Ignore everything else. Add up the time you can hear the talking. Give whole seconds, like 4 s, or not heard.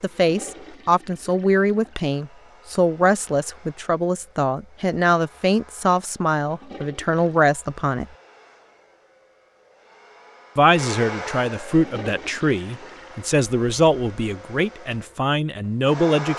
14 s.